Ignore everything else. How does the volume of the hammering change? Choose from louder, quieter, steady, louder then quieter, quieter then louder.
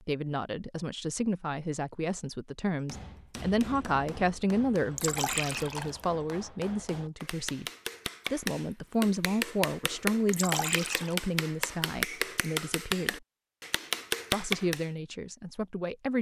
louder.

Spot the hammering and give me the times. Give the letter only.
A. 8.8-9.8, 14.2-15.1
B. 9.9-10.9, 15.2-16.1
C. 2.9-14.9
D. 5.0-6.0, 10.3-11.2
C.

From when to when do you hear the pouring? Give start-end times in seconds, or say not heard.
5.0-6.0, 10.3-11.2.